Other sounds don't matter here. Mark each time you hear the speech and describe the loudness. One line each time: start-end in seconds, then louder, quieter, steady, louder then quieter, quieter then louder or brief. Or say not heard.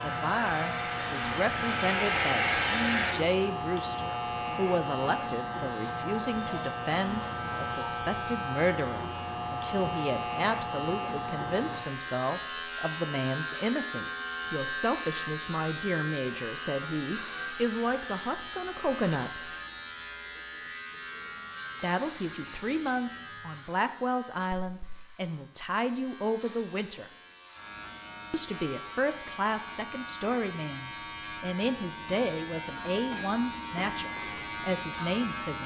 0.0-19.5 steady
21.8-27.1 steady
28.3-35.6 steady.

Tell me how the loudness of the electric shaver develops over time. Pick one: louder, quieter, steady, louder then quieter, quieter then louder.
quieter then louder.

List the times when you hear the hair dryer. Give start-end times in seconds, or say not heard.
0.0-3.1.